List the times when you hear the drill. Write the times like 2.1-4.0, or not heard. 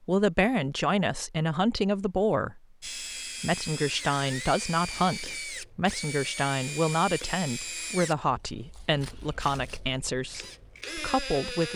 2.8-11.7.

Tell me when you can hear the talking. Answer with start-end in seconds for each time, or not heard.
0.1-2.6, 3.4-11.7.